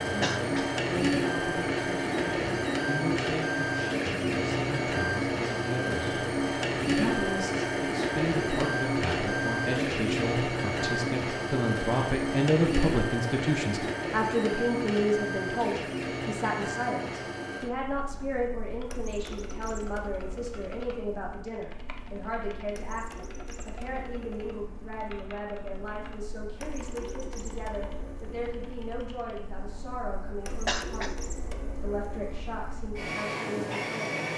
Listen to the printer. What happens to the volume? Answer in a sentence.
The volume of the printer goes down, then up.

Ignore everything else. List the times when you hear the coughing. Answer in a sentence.
You can hear the coughing from 0.2 to 0.7 s and from 30.6 to 31.1 s.